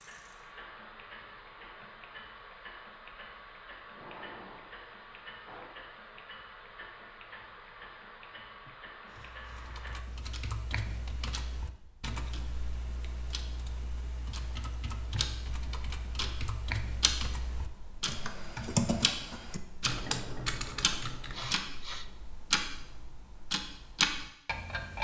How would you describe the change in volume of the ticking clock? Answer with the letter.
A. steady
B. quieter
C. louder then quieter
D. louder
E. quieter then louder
D.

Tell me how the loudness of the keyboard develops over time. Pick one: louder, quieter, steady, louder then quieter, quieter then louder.
louder.